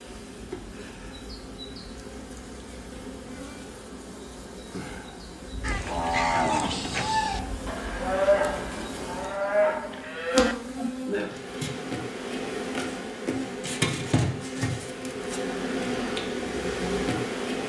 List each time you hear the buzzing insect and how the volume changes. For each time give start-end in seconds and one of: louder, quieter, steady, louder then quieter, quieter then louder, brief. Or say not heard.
0.0-17.6 louder.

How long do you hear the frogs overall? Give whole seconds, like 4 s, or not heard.
not heard.